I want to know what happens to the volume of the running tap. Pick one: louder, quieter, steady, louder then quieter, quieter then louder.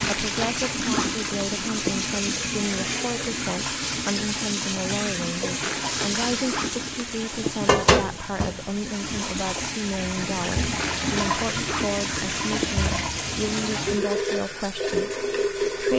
steady.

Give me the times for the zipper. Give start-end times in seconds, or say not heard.
0.0-2.0, 5.6-7.6, 10.8-12.8.